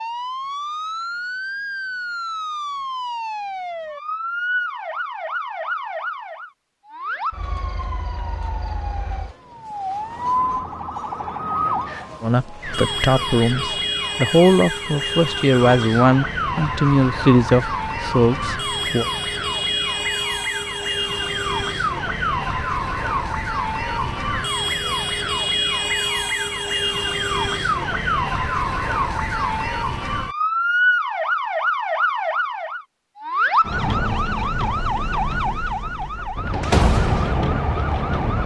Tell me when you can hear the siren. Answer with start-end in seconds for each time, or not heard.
0.0-38.4.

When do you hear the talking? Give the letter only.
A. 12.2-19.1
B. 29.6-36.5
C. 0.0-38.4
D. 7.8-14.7
A.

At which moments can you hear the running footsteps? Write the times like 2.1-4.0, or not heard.
not heard.